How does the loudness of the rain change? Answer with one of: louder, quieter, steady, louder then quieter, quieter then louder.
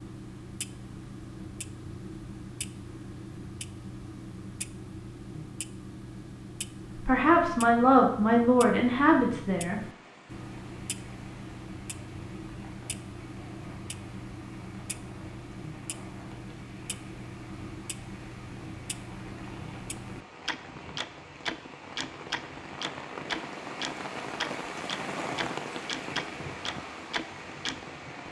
louder.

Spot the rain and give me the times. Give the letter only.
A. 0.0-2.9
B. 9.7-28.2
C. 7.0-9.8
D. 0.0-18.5
B.